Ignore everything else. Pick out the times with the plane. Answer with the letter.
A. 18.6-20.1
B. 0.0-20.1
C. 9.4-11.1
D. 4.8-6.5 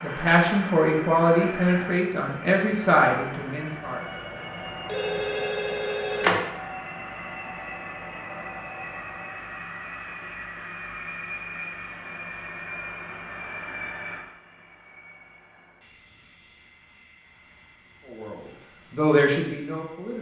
B.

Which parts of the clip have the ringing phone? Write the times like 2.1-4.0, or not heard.
4.8-6.5.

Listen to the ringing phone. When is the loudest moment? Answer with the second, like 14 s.
6 s.